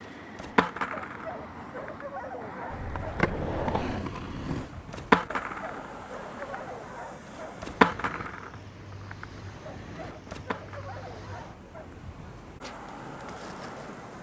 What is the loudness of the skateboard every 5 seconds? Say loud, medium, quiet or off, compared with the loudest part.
medium, loud, quiet.